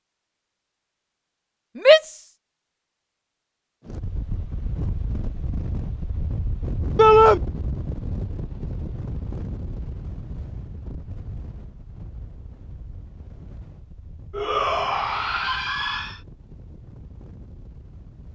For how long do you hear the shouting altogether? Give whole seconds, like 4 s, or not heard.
3 s.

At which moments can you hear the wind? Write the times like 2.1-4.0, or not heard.
3.9-18.3.